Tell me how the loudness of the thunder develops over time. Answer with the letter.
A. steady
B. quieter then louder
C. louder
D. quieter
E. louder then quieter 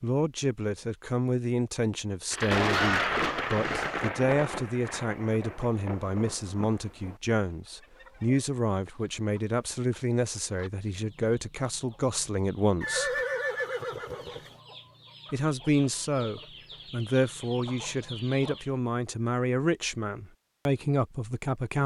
D.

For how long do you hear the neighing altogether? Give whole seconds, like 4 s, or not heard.
3 s.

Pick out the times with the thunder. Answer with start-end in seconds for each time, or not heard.
2.3-7.2.